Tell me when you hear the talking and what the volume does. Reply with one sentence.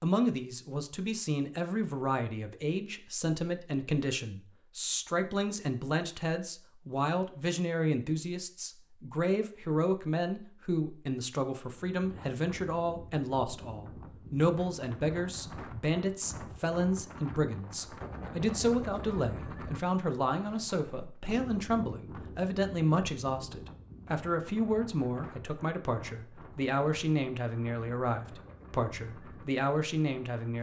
You can hear the talking from 0.0 to 30.5 s, at a steady volume.